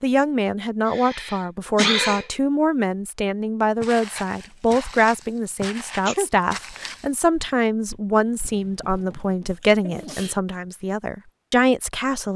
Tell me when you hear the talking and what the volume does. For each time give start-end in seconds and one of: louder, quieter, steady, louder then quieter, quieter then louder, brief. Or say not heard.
0.0-12.3 steady.